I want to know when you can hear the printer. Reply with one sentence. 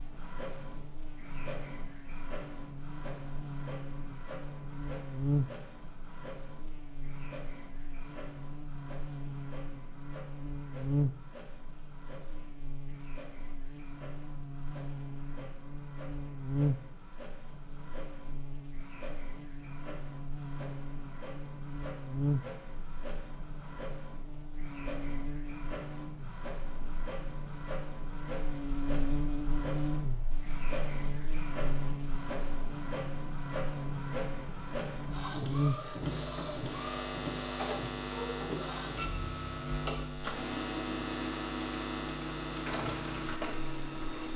You can hear the printer from 0.0 to 44.3 s.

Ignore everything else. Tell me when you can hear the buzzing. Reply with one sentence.
You can hear the buzzing from 0.0 to 44.1 s.